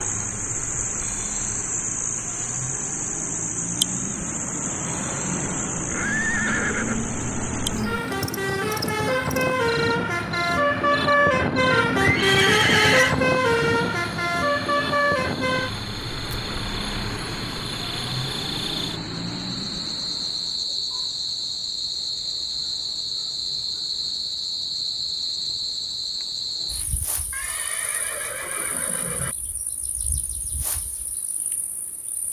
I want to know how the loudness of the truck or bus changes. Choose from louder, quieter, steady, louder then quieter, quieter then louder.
louder then quieter.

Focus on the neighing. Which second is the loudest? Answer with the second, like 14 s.
13 s.